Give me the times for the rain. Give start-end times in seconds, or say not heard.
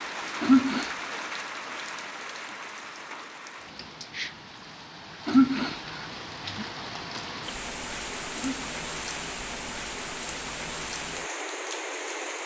0.0-12.4.